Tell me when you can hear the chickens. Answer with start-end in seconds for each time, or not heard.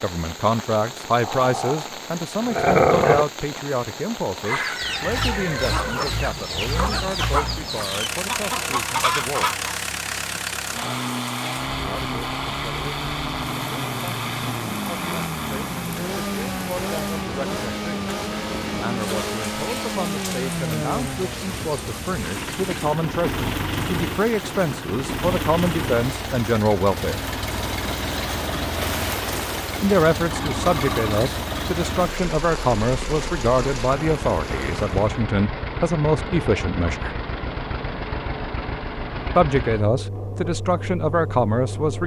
4.5-9.7.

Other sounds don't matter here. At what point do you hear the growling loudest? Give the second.
3 s.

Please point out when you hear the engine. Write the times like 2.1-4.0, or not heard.
4.8-42.0.